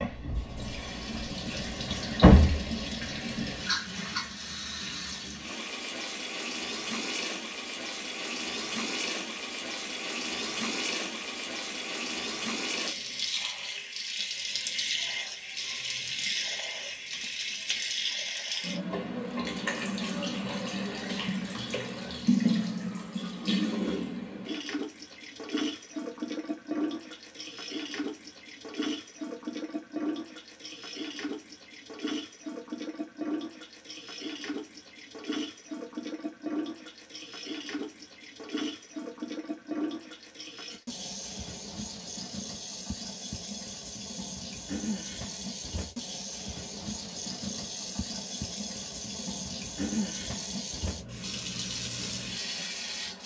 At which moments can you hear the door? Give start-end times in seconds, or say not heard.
1.9-2.7.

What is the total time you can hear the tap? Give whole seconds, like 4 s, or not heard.
53 s.